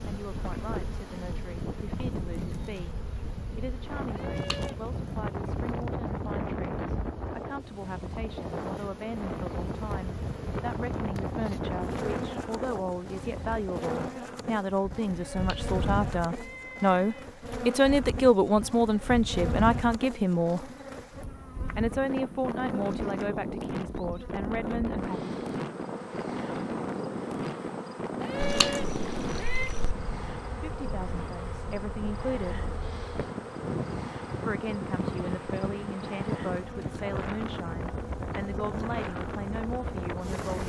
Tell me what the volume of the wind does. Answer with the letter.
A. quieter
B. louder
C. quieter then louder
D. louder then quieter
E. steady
E.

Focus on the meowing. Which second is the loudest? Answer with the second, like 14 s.
29 s.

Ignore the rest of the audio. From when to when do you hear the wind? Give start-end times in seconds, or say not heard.
0.0-40.6.